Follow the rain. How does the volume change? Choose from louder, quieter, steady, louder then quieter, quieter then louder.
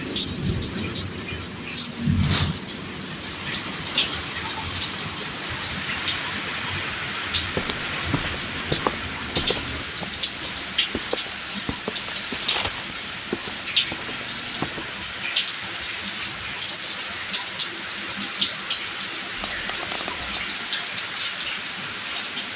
steady.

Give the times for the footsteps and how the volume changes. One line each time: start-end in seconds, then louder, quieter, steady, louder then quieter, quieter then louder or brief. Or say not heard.
7.5-14.9 quieter then louder.